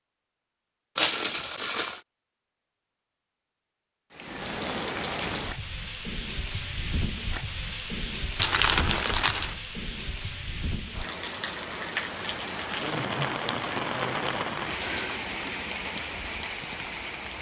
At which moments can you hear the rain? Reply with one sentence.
The rain can be heard from 4.1 to 17.3 s.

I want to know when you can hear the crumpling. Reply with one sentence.
The crumpling can be heard from 0.9 to 2.0 s, from 8.3 to 9.6 s and from 12.8 to 14.0 s.